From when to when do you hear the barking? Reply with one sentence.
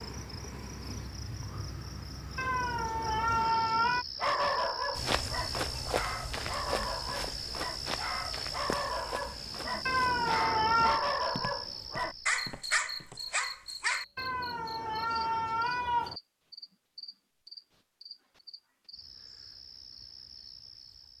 The barking can be heard from 4.2 to 14.1 s.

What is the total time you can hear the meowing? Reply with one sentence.
You can hear the meowing for 5 seconds altogether.